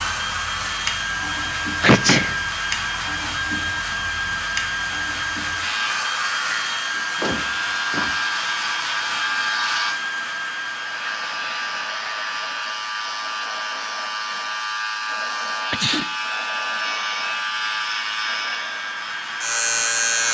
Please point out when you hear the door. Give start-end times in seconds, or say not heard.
7.0-8.2.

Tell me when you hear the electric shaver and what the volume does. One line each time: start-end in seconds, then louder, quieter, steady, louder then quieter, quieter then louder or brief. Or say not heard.
0.0-20.2 louder.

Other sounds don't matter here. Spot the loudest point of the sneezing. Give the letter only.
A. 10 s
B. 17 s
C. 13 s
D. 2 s
D.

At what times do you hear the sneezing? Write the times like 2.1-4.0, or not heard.
1.8-2.4, 15.7-16.1.